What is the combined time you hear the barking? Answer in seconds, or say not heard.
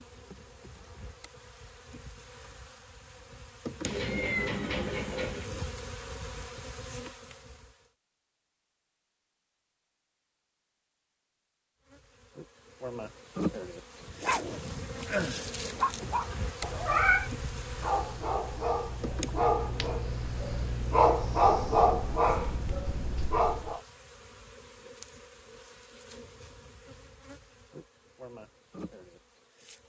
10 s.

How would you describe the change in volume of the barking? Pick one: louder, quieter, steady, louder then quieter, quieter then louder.
louder.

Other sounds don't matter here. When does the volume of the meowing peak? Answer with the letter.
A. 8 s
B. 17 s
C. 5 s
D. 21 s
B.